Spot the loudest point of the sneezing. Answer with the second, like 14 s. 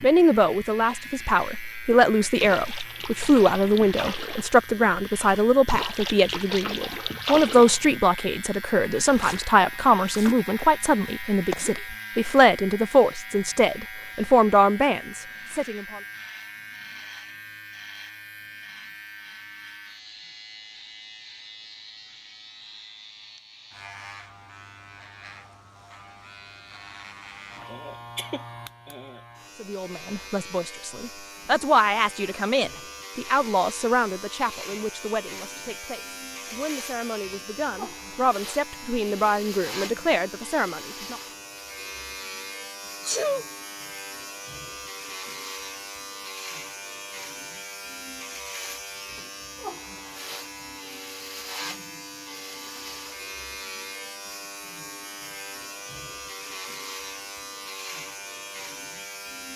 43 s.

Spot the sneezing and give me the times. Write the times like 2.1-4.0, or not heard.
11.4-11.8, 27.6-29.2, 43.0-43.5.